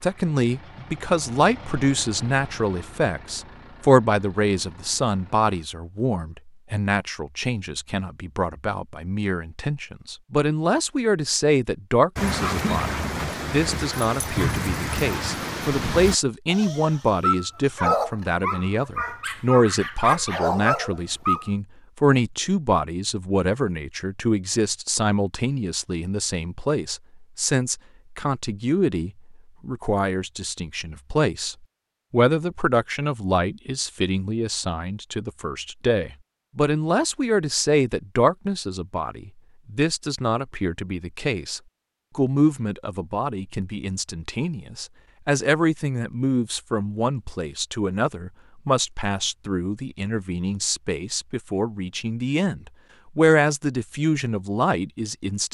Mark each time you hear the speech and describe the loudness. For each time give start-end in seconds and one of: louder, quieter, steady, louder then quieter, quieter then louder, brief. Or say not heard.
0.0-55.4 steady.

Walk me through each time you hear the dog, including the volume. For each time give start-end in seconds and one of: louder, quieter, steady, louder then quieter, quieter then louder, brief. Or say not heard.
12.2-21.5 steady.